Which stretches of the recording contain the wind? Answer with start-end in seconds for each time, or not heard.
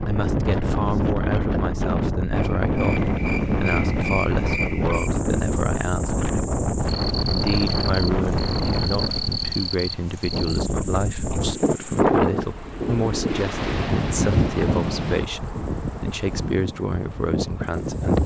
0.0-18.2.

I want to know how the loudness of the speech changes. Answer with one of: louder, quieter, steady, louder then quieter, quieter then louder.
steady.